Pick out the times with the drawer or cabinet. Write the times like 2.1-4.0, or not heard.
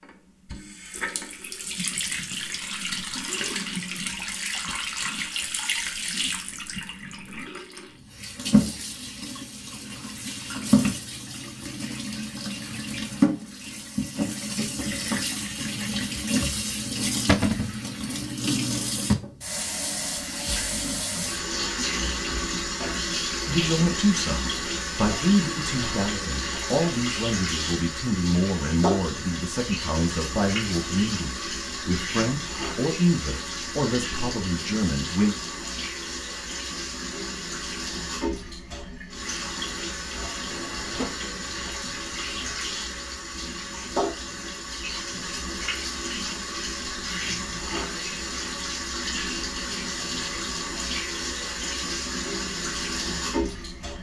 17.2-17.8, 40.5-41.2.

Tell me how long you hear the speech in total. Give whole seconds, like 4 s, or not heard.
12 s.